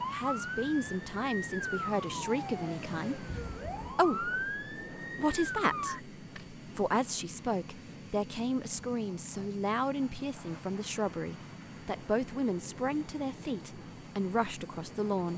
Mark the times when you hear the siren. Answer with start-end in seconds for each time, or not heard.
0.0-6.0.